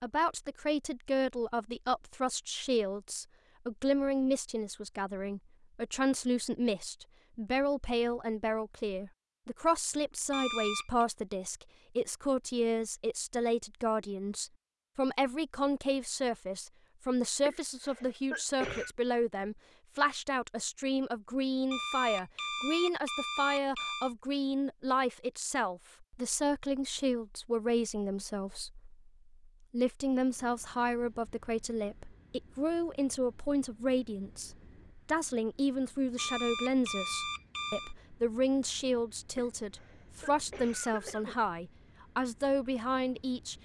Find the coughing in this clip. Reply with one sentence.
The coughing can be heard from 17.4 to 18.9 s and from 39.4 to 41.4 s.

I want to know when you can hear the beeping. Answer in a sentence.
You can hear the beeping from 10.3 to 11.1 s, from 21.7 to 24.1 s and from 36.1 to 38.0 s.